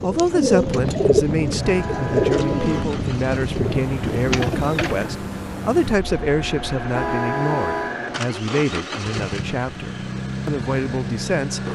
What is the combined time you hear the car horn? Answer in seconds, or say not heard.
2 s.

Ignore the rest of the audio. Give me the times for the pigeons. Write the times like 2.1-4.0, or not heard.
0.0-5.1.